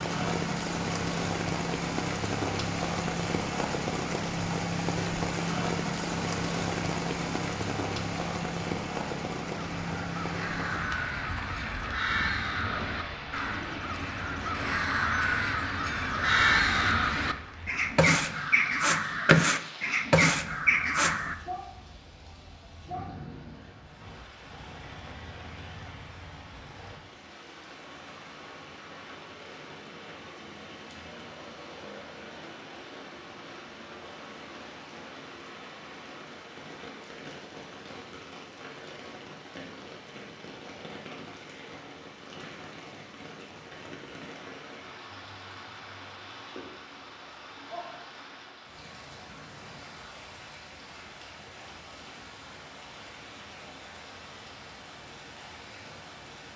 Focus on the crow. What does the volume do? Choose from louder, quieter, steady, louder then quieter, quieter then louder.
louder.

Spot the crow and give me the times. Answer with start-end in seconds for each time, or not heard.
9.6-21.4.